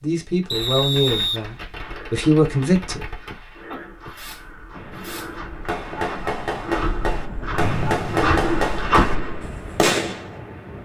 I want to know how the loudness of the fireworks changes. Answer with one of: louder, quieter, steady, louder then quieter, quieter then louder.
louder.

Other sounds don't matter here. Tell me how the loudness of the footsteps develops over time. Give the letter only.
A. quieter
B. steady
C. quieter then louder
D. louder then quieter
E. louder
E.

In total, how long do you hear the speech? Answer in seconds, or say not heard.
3 s.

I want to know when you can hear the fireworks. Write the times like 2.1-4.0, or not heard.
0.4-10.3.